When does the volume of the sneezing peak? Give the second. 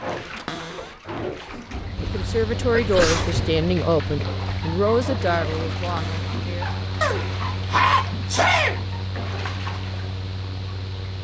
8 s.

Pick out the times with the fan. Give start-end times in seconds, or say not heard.
1.6-11.1.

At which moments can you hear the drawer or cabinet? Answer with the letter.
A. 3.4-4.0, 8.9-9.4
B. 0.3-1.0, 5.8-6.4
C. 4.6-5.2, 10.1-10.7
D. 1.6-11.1
B.